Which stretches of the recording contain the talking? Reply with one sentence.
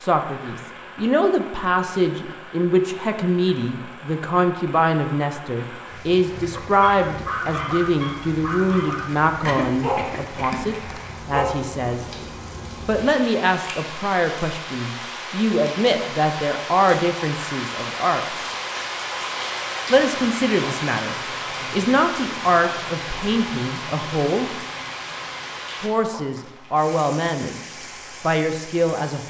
You can hear the talking from 0.0 to 12.1 s, from 12.8 to 18.5 s, from 19.9 to 24.6 s, from 25.8 to 27.6 s and from 28.2 to 29.2 s.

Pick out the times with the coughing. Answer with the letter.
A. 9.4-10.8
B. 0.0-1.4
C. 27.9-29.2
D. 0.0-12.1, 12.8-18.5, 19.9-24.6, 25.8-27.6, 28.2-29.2
A.